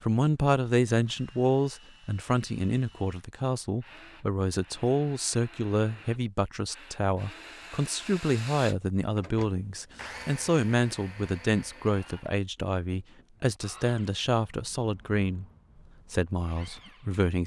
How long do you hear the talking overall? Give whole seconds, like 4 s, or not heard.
17 s.